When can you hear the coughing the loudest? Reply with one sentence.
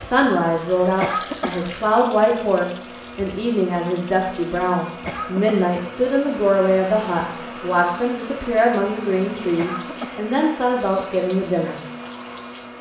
The volume of the coughing peaks at 1 second.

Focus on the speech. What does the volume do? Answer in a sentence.
The volume of the speech stays about the same.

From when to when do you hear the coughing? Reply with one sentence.
The coughing can be heard from 0.9 to 1.7 s, from 5.0 to 5.8 s and from 9.6 to 10.3 s.